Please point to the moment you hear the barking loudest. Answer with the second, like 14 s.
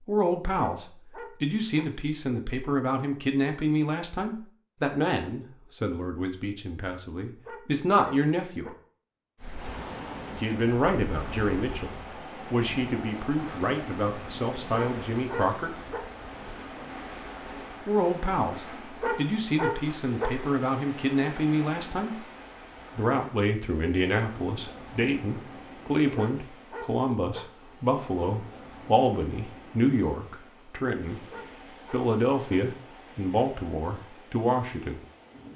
20 s.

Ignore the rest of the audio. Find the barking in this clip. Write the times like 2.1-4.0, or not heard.
0.6-1.9, 7.5-8.7, 14.7-16.0, 19.0-20.3, 26.1-27.4, 31.3-32.5.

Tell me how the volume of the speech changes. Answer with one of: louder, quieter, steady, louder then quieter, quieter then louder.
steady.